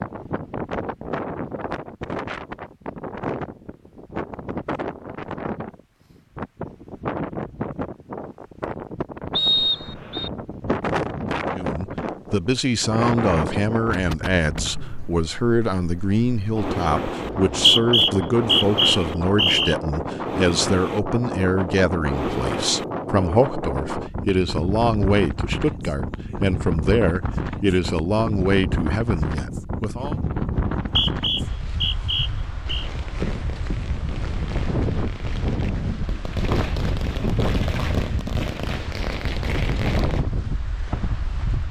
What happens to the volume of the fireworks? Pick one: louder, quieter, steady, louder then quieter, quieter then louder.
louder.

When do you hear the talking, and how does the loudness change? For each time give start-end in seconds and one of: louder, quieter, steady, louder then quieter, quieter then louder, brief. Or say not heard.
11.5-30.1 steady.